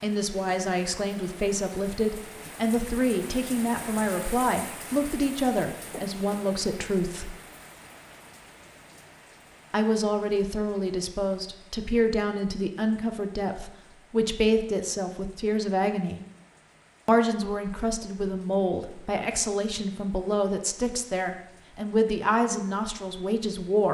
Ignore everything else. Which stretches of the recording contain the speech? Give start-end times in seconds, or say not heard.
0.0-7.3, 9.7-16.2, 17.1-23.8.